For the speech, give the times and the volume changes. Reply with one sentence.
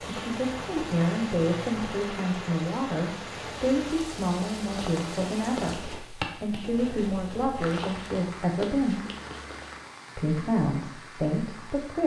The speech can be heard from 0.1 to 9.1 s, at a steady volume; and briefly from 10.2 to 12.0 s.